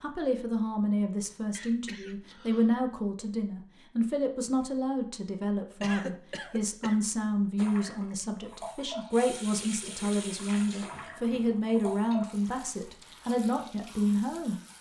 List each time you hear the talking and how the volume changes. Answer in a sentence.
You can hear the talking from 0.0 to 14.6 s, at a steady volume.